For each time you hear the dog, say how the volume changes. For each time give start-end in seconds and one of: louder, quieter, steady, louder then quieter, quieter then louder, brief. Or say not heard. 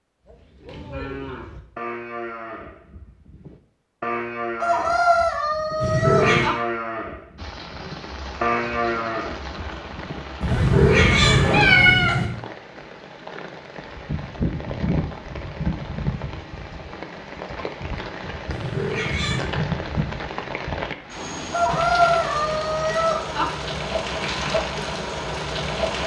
not heard.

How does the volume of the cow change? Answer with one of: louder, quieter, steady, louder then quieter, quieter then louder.
louder.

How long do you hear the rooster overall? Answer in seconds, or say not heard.
4 s.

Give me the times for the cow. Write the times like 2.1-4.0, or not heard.
0.2-12.1.